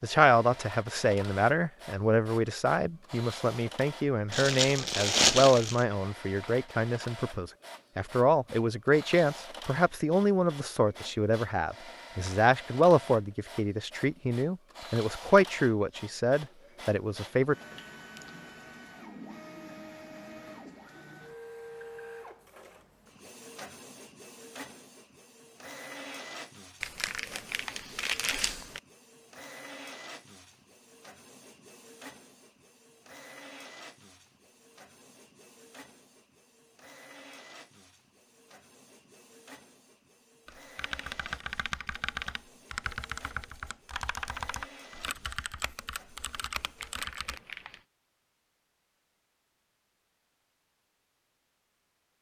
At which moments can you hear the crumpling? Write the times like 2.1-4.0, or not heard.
4.3-5.8, 26.8-28.8, 46.8-47.9.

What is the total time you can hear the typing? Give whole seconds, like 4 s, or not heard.
7 s.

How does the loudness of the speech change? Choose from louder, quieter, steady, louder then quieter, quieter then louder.
steady.